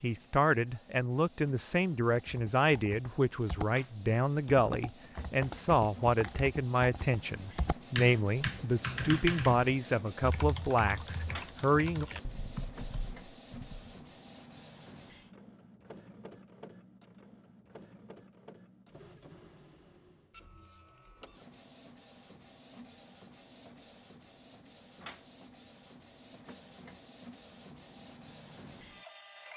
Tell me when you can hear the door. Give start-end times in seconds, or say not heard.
not heard.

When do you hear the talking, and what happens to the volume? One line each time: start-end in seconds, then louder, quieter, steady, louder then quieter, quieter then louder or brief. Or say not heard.
0.0-12.1 steady.